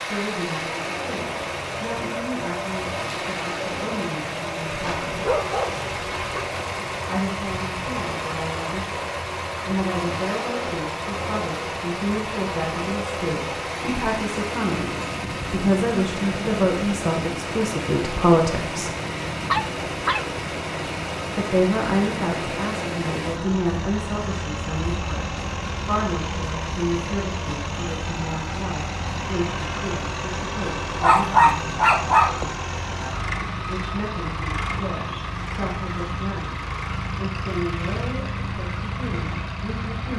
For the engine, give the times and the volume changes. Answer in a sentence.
The engine can be heard from 0.0 to 40.1 s, at a steady volume.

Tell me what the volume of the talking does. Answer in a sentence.
The volume of the talking goes up, then down.